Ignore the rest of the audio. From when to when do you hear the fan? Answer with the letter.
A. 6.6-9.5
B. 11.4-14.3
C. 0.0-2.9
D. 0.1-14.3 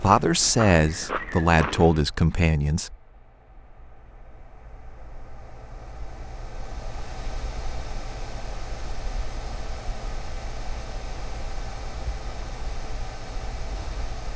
D.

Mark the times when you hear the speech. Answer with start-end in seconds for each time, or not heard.
0.0-2.9.